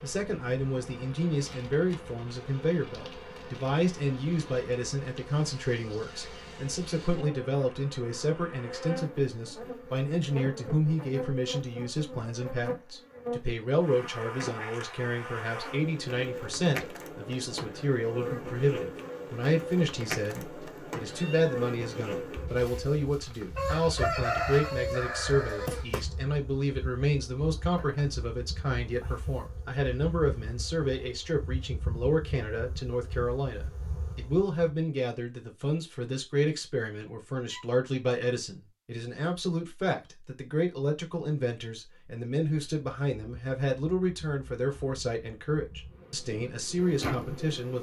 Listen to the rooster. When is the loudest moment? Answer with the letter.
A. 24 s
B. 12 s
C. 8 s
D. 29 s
A.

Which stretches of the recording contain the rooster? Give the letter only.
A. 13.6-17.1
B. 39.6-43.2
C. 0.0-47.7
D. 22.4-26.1
D.